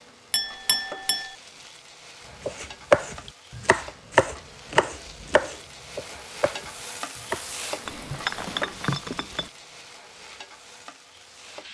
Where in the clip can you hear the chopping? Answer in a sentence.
The chopping can be heard from 2.5 to 7.5 s.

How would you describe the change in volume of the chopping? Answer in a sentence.
The volume of the chopping goes down.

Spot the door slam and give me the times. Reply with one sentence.
You can't hear the door slam here.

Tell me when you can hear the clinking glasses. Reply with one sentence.
You can hear the clinking glasses from 0.3 to 1.4 s and from 7.8 to 9.5 s.